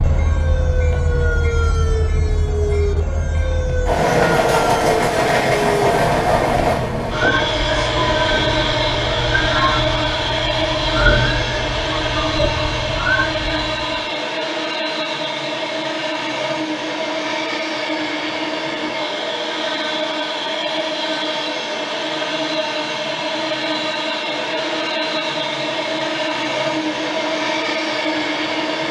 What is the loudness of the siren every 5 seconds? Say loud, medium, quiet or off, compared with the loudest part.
loud, loud, loud, off, off, off.